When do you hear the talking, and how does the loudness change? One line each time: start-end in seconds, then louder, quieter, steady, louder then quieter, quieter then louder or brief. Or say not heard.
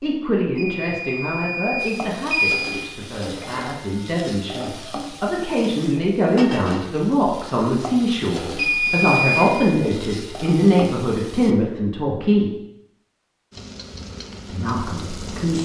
0.0-12.5 louder
14.5-15.6 brief.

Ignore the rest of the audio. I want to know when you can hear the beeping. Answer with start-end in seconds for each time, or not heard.
0.6-2.7, 8.6-9.6.